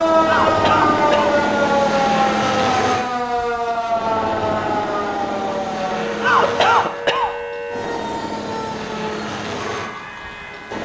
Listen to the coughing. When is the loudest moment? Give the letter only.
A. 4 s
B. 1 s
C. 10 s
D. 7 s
D.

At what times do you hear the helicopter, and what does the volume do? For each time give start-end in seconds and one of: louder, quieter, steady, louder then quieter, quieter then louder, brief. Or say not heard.
0.0-10.7 quieter.